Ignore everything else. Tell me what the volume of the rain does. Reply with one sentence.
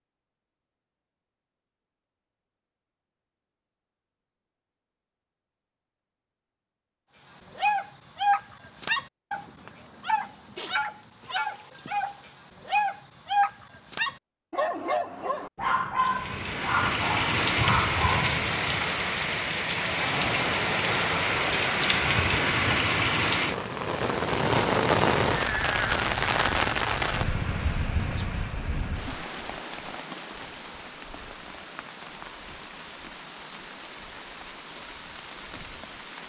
The volume of the rain goes down.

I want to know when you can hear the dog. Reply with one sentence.
You can hear the dog from 7.2 to 18.4 s.